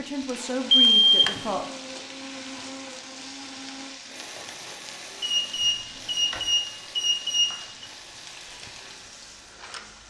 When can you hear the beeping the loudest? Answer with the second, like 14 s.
1 s.